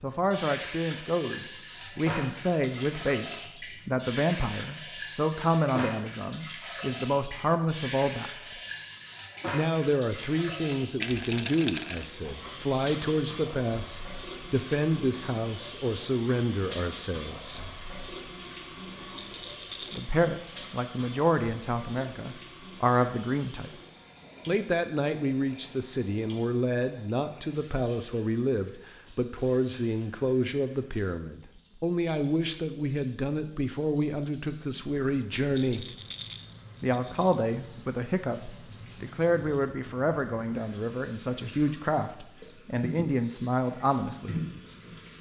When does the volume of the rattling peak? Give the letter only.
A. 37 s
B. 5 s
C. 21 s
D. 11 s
D.